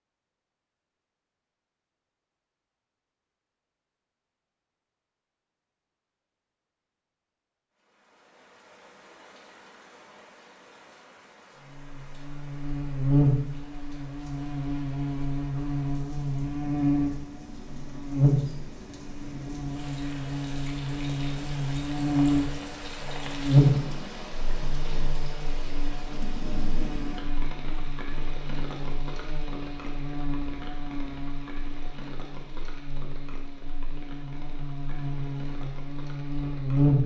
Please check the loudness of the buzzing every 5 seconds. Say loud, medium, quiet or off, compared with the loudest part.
off, off, loud, loud, loud, quiet, quiet, loud.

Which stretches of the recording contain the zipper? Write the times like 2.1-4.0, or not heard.
not heard.